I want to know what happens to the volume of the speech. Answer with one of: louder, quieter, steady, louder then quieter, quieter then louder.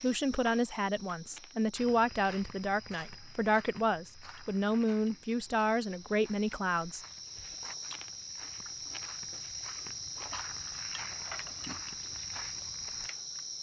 steady.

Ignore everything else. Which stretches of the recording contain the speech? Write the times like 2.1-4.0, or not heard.
0.0-7.0.